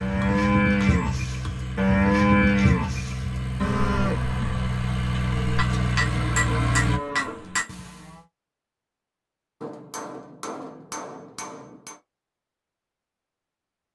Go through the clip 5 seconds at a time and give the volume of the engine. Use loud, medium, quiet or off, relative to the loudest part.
medium, loud, off.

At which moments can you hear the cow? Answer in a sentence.
You can hear the cow from 0.0 to 8.2 s.